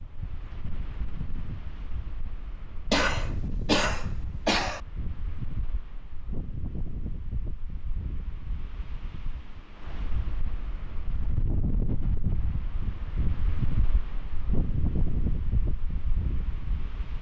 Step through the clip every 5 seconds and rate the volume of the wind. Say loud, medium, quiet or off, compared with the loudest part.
medium, medium, loud, loud.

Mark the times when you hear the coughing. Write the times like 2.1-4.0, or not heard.
2.9-4.8.